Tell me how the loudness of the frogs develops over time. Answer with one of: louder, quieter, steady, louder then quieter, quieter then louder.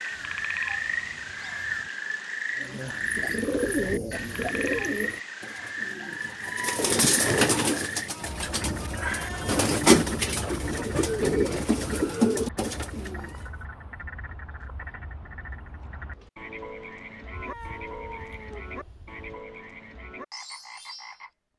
quieter.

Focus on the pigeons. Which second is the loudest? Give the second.
10 s.